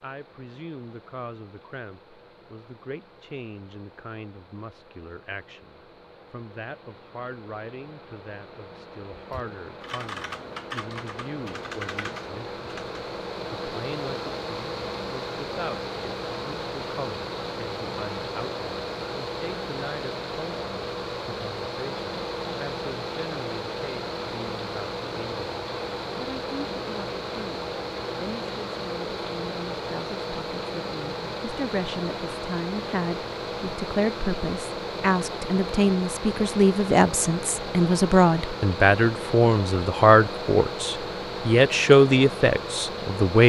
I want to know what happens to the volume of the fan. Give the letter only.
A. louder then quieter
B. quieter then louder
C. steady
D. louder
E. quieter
D.